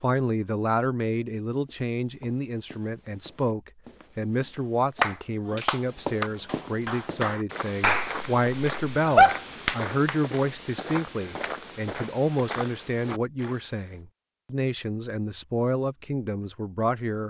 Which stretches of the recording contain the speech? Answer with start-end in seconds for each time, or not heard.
0.0-17.2.